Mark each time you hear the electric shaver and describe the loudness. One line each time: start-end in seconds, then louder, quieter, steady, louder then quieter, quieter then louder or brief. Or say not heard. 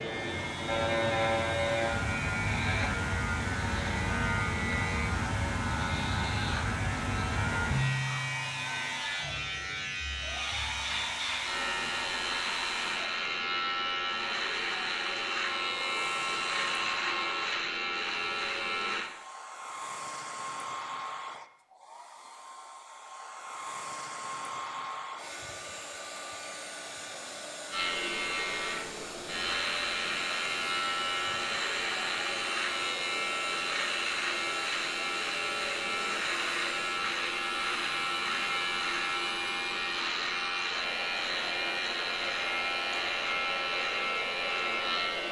0.0-19.1 steady
27.7-45.2 steady.